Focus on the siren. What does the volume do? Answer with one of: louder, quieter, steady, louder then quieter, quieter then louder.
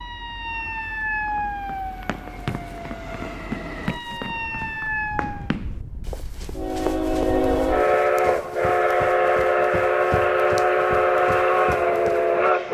quieter then louder.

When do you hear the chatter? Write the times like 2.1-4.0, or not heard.
not heard.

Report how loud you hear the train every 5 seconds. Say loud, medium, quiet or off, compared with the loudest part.
quiet, loud, loud.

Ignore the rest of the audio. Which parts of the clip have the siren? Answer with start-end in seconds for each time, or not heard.
0.0-5.5.